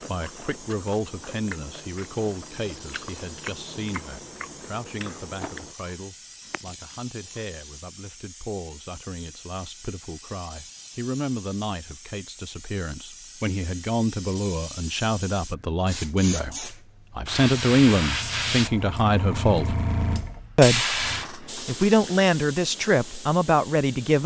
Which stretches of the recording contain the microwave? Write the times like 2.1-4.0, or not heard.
not heard.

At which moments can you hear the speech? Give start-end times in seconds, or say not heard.
0.1-19.8, 20.6-24.2.